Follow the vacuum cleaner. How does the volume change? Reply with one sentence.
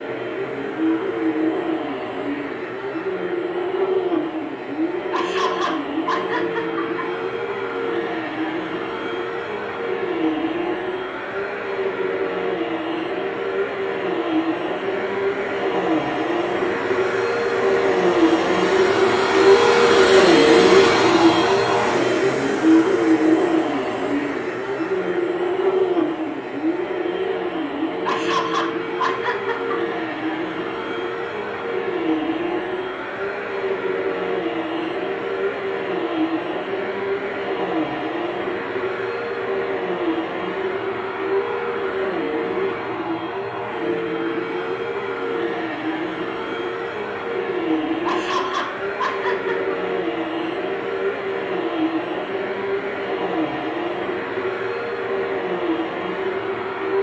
The volume of the vacuum cleaner goes up, then down.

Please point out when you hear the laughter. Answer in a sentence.
The laughter can be heard from 5.1 to 7.0 s, from 28.1 to 29.9 s and from 48.0 to 49.8 s.